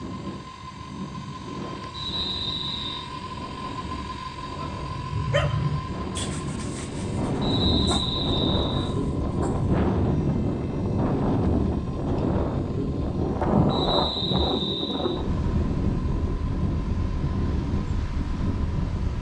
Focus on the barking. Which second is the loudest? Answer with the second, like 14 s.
6 s.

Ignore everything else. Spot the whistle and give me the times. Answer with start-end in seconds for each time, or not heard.
1.9-3.1, 7.4-8.9, 13.7-15.2.